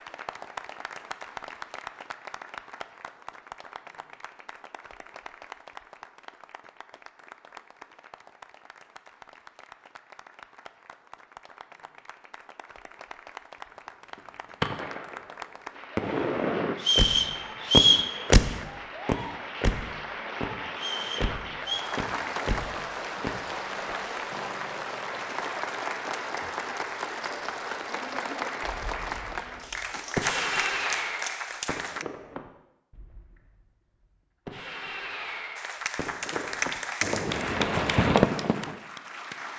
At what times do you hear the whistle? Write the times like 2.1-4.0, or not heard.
16.8-18.1, 20.8-21.9.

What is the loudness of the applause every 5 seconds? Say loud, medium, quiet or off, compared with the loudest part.
medium, quiet, quiet, medium, loud, loud, loud, loud.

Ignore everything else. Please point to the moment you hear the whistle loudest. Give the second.
18 s.